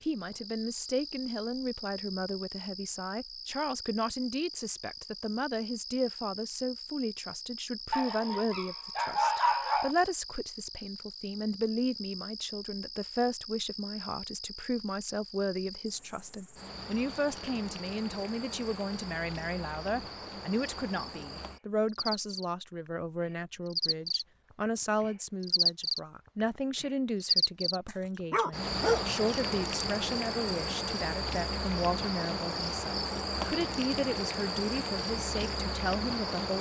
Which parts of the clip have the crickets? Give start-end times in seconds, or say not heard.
0.0-36.5.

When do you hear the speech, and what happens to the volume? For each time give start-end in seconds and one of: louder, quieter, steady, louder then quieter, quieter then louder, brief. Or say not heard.
0.0-36.5 steady.